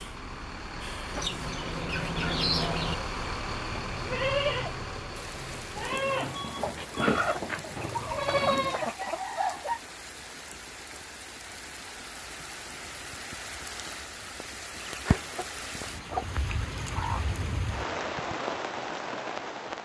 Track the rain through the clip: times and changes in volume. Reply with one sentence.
You can hear the rain from 5.2 to 19.8 s, getting louder.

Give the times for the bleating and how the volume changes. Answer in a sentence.
The bleating can be heard from 3.5 to 8.9 s, getting quieter then louder.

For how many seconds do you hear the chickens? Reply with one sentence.
You can hear the chickens for 7 seconds altogether.